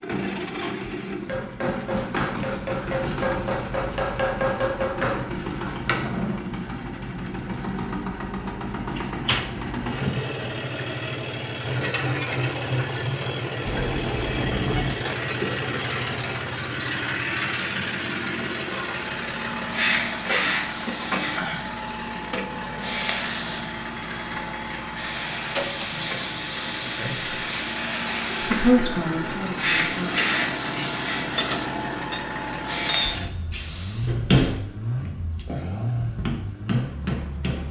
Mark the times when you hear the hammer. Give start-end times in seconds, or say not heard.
1.2-6.4, 34.0-37.6.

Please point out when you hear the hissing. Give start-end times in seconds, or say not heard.
18.6-34.4.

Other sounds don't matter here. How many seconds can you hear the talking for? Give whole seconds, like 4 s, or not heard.
2 s.